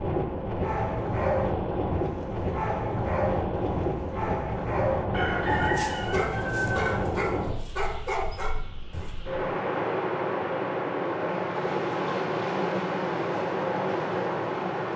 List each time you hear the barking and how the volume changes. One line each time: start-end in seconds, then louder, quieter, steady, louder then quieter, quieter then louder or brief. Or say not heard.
0.6-9.2 steady.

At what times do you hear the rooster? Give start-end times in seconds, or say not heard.
5.1-7.0.